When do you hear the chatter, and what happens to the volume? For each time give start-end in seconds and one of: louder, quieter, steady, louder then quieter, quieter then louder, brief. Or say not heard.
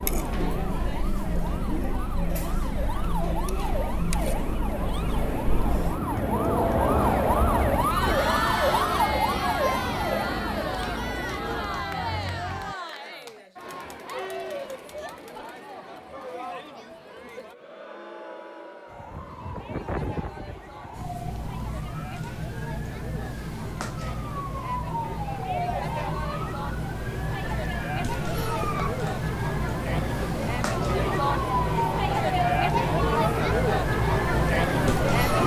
0.0-35.4 quieter then louder.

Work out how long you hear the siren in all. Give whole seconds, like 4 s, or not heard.
29 s.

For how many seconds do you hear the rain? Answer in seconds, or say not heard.
not heard.